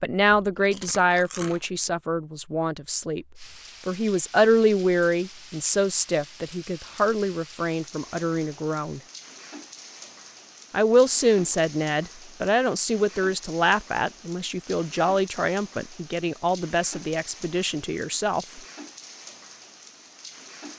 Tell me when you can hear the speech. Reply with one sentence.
The speech can be heard from 0.0 to 9.0 s and from 10.7 to 18.6 s.